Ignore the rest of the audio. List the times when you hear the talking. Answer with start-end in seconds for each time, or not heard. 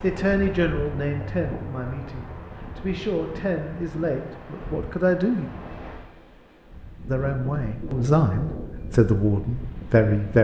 0.0-5.5, 7.0-10.3.